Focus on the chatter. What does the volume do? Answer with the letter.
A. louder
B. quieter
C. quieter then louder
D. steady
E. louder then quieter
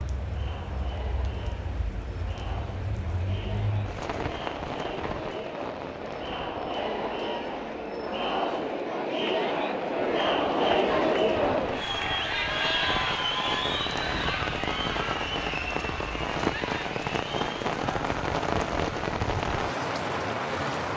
E.